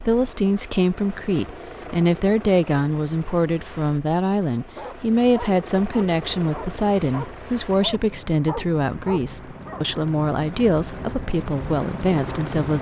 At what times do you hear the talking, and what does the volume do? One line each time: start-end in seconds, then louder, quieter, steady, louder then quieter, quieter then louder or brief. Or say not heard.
0.1-12.7 steady.